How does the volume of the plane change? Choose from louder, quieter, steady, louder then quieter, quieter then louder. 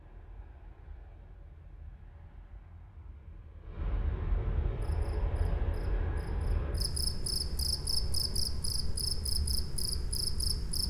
louder then quieter.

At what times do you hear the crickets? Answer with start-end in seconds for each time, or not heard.
4.7-10.8.